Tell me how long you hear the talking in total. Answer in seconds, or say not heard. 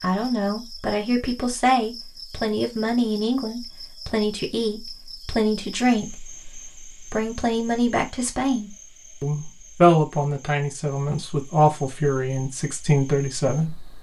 13 s.